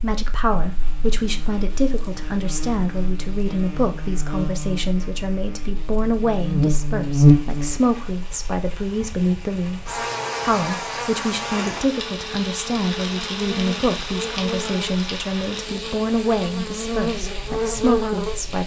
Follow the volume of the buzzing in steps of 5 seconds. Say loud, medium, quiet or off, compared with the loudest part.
quiet, loud, medium, medium.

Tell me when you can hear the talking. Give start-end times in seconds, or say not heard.
0.0-18.6.